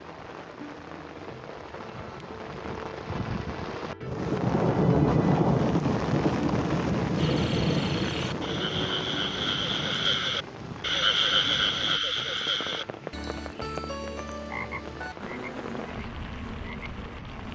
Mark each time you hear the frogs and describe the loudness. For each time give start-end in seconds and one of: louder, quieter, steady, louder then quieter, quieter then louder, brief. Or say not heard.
7.2-17.5 louder then quieter.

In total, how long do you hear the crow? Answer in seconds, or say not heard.
not heard.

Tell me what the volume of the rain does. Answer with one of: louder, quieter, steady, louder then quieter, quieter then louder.
louder then quieter.